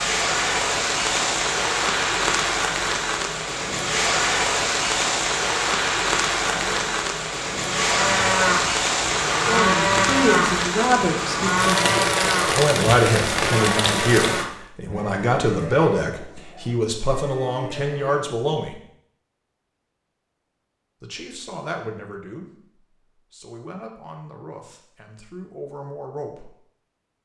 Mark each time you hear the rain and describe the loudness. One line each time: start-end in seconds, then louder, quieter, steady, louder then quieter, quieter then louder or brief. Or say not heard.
0.0-14.4 steady.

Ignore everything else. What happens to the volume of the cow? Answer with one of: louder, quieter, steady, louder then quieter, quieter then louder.
quieter.